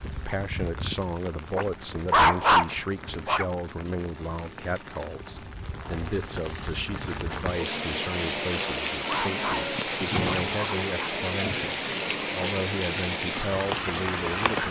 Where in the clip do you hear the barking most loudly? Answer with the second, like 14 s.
2 s.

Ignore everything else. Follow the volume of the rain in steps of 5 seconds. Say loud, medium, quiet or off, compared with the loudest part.
quiet, loud, loud.